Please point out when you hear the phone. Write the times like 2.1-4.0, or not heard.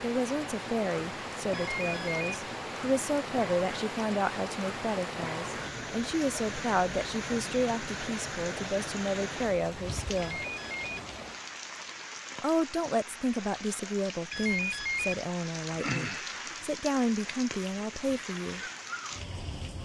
1.5-2.2, 10.2-10.9, 14.3-15.2.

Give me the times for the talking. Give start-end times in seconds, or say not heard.
0.0-10.4, 12.4-18.6.